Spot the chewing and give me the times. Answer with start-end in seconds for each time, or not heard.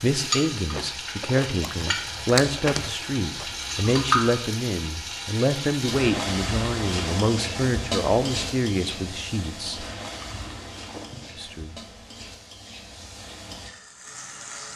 0.7-3.5, 10.0-11.3.